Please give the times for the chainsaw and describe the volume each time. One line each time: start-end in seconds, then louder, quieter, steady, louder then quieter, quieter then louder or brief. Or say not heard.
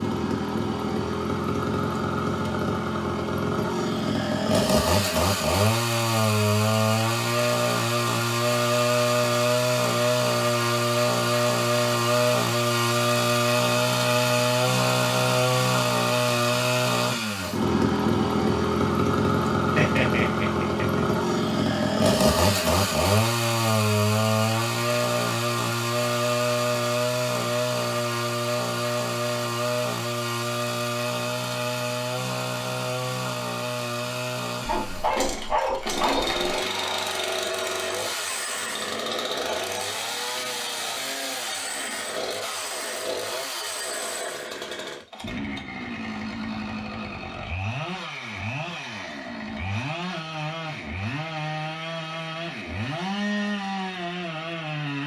0.0-55.0 quieter.